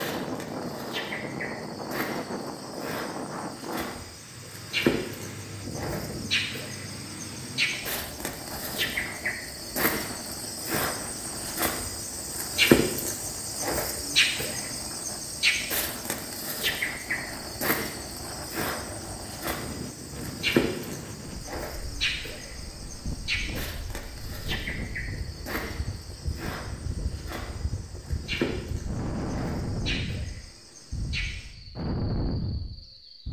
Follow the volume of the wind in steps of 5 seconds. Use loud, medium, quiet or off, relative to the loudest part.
loud, medium, medium, medium, medium, loud, loud.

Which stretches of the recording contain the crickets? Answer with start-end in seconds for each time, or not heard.
0.0-33.2.